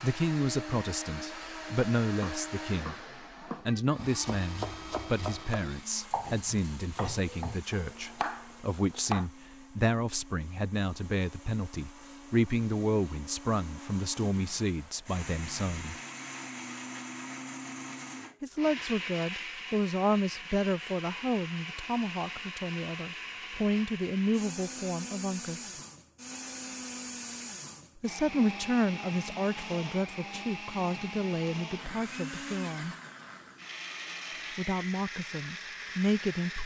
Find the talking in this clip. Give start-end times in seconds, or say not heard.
0.0-3.0, 3.6-15.9, 18.4-25.7, 28.0-33.0, 34.5-36.6.